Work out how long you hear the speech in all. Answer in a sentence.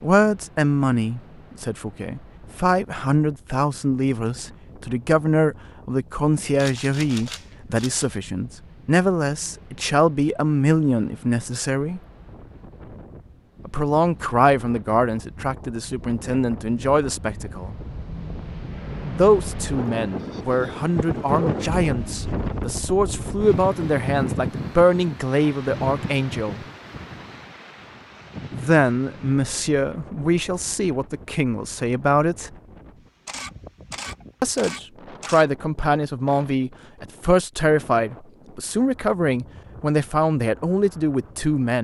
The speech can be heard for 35 seconds in total.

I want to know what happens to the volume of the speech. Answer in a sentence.
The volume of the speech stays about the same.